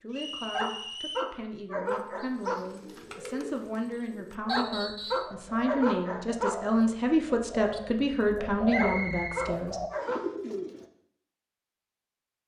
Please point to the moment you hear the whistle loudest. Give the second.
9 s.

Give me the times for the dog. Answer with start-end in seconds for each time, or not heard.
0.5-2.6, 4.5-6.6, 8.8-10.2.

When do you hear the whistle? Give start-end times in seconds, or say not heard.
0.1-1.4, 4.5-5.3, 8.7-10.2.